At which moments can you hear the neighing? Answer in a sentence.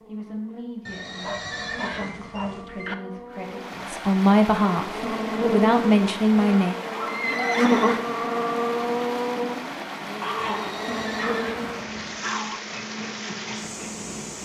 You can hear the neighing from 0.8 to 2.6 s, from 7.0 to 8.0 s and from 10.3 to 12.2 s.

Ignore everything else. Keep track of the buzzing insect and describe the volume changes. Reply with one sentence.
The loudness of the buzzing insect goes up, then down.